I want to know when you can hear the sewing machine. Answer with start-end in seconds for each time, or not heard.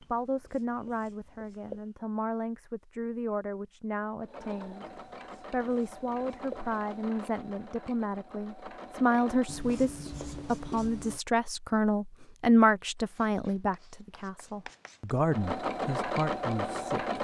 4.2-9.6, 15.2-17.1.